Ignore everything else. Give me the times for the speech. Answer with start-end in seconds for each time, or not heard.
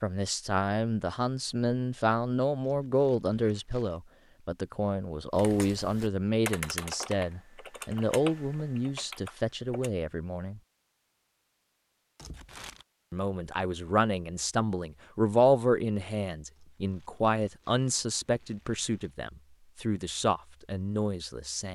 0.0-10.6, 13.1-21.7.